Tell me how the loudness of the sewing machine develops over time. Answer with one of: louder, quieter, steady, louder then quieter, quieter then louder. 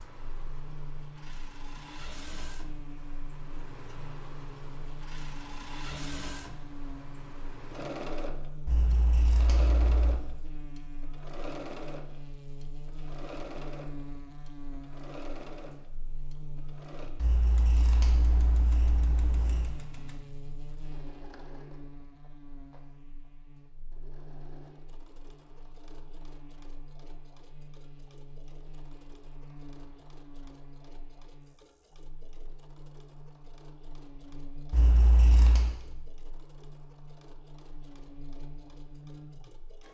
quieter.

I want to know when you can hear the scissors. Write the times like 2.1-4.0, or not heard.
8.7-10.2, 17.1-19.8, 34.7-35.8.